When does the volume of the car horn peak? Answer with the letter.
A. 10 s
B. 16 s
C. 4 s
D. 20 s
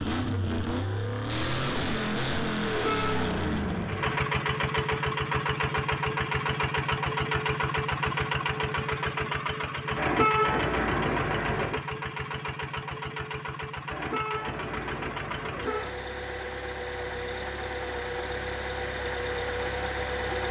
A.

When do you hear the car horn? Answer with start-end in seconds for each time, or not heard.
2.6-4.2, 9.9-11.8, 13.8-15.9.